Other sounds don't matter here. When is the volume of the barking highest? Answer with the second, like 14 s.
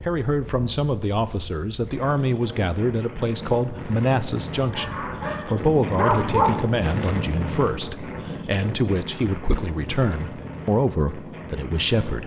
6 s.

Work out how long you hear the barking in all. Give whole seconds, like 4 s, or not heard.
2 s.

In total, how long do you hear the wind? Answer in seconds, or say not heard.
12 s.